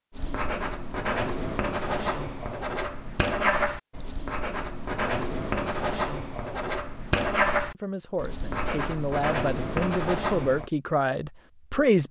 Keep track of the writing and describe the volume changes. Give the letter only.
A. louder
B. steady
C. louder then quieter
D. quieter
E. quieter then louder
B.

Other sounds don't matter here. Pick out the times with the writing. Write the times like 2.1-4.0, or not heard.
0.1-10.7.